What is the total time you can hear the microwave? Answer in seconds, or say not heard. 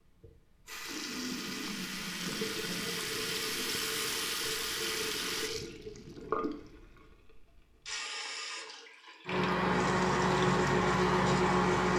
3 s.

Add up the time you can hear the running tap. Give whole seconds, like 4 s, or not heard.
12 s.